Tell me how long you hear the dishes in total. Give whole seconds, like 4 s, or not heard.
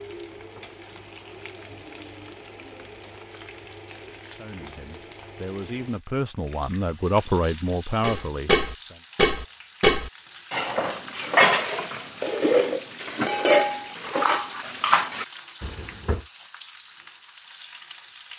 8 s.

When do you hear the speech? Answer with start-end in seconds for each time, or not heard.
4.3-9.0.